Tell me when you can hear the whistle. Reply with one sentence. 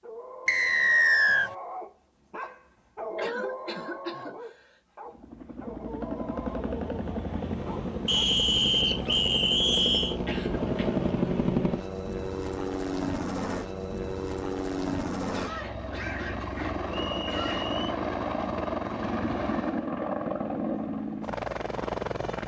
The whistle can be heard from 0.5 to 1.5 s, from 8.1 to 10.2 s and from 16.9 to 17.9 s.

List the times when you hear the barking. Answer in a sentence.
You can hear the barking from 0.0 to 8.2 s.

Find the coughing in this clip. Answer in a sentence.
The coughing can be heard from 3.1 to 4.6 s, from 10.2 to 10.9 s and from 15.3 to 17.7 s.